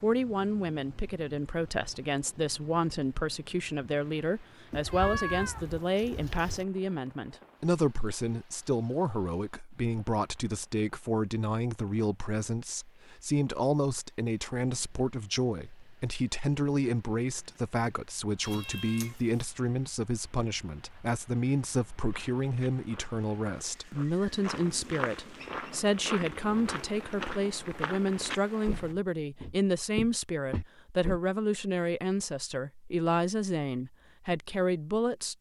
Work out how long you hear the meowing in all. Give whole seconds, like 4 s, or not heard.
3 s.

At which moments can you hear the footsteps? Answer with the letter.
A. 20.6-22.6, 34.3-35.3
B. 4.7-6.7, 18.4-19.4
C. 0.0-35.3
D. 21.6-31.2
D.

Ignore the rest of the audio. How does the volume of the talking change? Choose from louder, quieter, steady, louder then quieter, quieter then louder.
steady.